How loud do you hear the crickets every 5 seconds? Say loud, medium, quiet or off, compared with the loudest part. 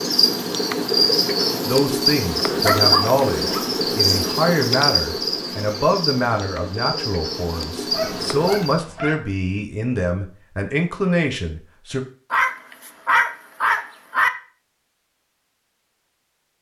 loud, medium, off, off.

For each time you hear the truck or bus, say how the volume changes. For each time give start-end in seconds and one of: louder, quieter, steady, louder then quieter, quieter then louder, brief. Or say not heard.
not heard.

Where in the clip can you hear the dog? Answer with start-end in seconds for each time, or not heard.
2.5-3.6, 7.9-9.2, 12.3-14.3.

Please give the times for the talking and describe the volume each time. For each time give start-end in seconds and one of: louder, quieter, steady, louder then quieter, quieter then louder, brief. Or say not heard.
1.6-12.1 steady.